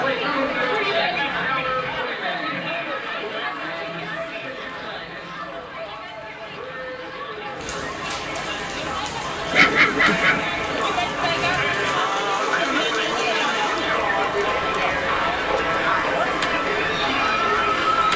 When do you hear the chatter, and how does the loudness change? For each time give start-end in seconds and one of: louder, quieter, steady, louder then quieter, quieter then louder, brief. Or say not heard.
0.0-18.1 quieter then louder.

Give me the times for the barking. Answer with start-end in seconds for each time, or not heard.
9.5-10.4.